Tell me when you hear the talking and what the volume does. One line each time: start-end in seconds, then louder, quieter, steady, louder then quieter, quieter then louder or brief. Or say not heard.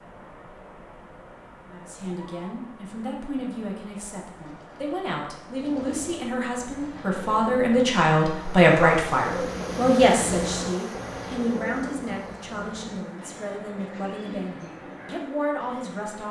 1.6-16.2 louder then quieter.